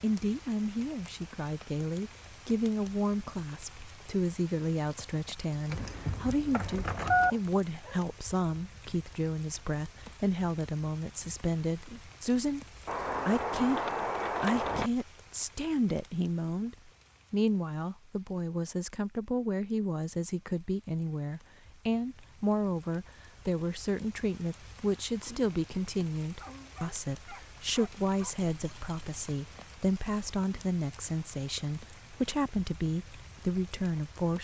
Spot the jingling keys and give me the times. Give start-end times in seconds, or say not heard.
5.7-7.3, 12.8-14.9, 28.5-29.2.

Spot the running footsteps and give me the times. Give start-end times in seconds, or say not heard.
not heard.